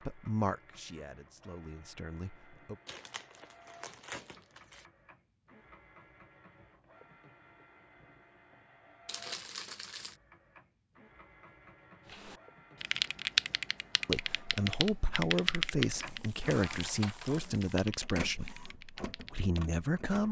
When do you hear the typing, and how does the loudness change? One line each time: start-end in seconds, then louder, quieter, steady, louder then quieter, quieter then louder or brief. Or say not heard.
12.1-19.8 quieter.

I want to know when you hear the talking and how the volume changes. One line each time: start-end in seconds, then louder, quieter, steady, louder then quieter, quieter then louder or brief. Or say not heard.
0.1-2.8 brief
14.1-20.2 steady.